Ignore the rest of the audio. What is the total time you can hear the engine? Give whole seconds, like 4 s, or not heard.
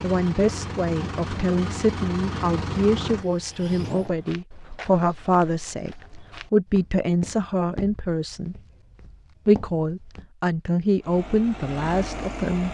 6 s.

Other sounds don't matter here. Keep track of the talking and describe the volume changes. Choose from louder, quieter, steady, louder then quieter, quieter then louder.
steady.